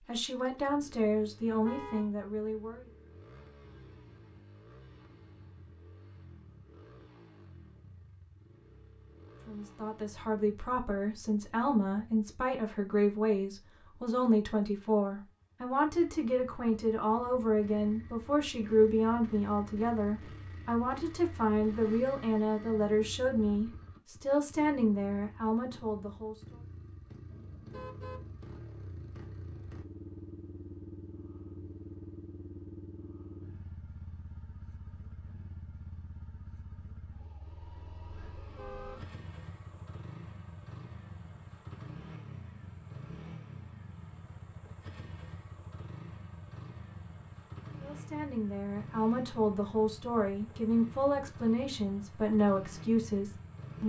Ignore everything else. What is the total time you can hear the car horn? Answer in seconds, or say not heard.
2 s.